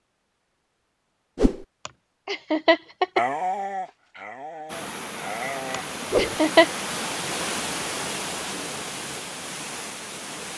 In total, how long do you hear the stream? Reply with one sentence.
The stream can be heard for 6 seconds in total.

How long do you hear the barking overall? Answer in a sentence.
You can hear the barking for 3 seconds altogether.